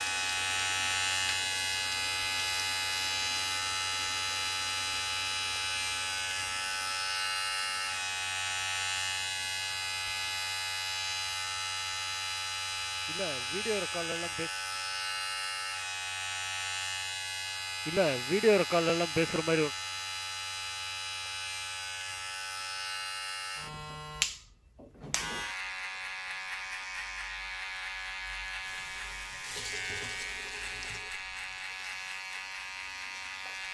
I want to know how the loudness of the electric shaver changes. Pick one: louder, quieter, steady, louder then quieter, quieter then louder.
quieter.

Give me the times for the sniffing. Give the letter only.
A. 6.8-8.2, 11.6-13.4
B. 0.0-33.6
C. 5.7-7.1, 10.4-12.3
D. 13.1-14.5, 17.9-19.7
D.